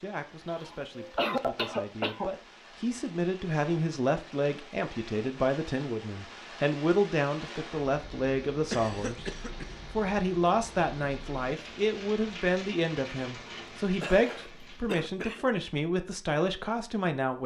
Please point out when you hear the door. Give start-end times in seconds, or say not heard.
not heard.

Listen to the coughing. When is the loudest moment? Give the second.
1 s.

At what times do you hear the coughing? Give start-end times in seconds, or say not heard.
0.5-2.3, 8.7-9.7, 14.0-15.4.